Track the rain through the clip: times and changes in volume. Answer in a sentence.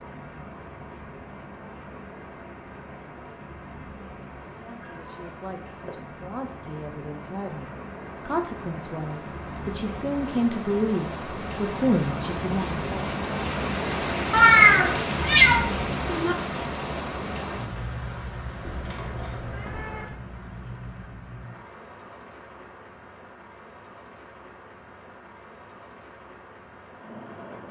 The rain can be heard from 0.0 to 27.6 s, getting louder then quieter.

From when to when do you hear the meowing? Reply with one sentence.
The meowing can be heard from 4.8 to 5.9 s, from 14.3 to 16.4 s and from 18.6 to 20.1 s.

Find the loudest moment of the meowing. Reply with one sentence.
The loudest moment of the meowing is at 15 seconds.